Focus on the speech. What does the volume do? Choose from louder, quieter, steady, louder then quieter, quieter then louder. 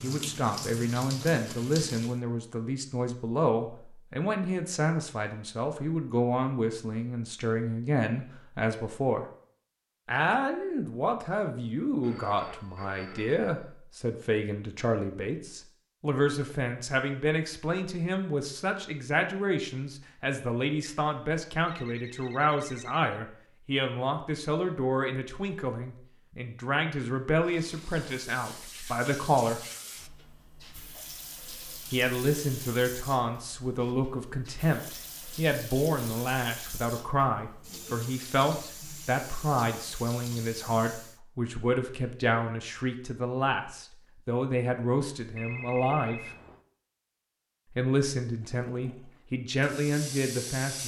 steady.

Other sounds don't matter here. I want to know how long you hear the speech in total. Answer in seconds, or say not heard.
46 s.